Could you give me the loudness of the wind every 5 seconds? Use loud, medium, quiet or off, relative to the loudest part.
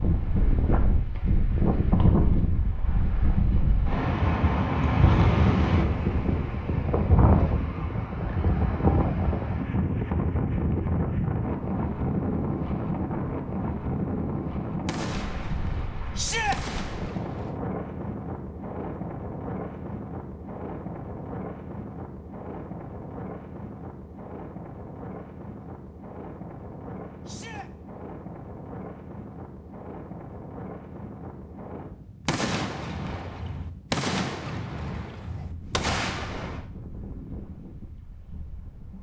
loud, loud, loud, medium, quiet, quiet, quiet, quiet.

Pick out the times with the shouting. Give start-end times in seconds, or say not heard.
16.1-16.6, 27.2-27.7.